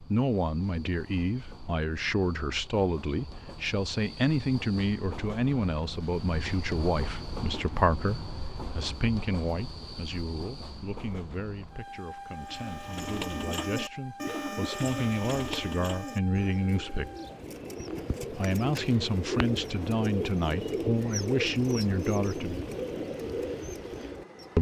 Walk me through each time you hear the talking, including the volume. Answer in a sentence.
You can hear the talking from 0.0 to 17.1 s, getting quieter then louder; and from 18.3 to 22.6 s, at a steady volume.